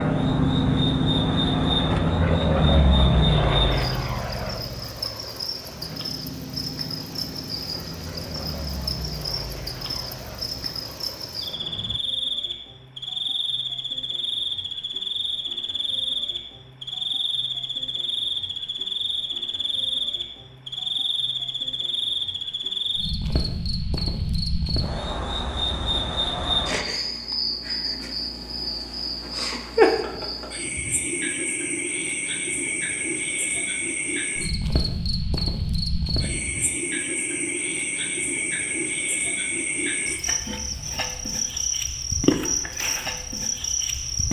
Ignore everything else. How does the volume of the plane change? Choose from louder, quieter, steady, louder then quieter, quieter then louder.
quieter.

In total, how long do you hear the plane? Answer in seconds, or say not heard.
12 s.